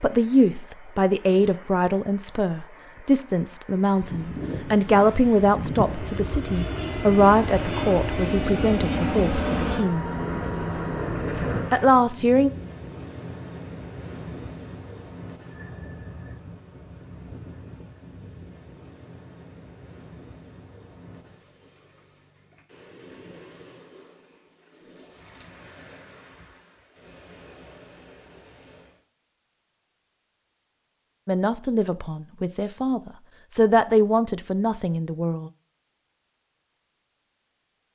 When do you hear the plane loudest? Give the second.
9 s.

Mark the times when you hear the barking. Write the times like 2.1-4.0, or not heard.
not heard.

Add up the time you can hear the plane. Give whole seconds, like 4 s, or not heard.
8 s.